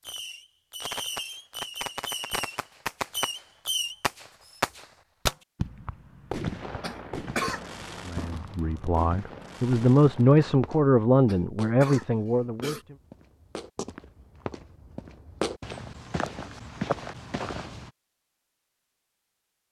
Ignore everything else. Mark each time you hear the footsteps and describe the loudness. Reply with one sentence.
The footsteps can be heard from 10.5 to 17.9 s, getting quieter then louder.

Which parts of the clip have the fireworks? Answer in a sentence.
The fireworks can be heard from 0.0 to 10.6 s.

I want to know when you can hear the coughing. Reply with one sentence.
The coughing can be heard from 6.8 to 7.6 s and from 11.2 to 12.8 s.